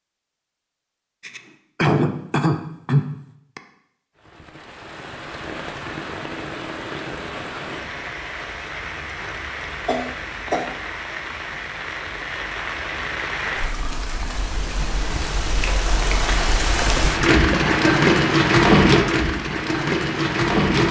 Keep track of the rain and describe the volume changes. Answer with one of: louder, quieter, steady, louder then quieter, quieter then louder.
louder.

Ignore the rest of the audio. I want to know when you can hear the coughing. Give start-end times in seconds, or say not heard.
1.2-3.6, 9.8-10.7, 16.8-18.4.